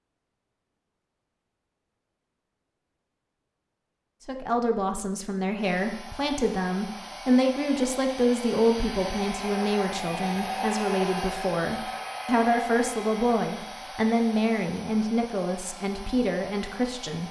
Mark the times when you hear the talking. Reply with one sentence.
The talking can be heard from 4.2 to 17.2 s.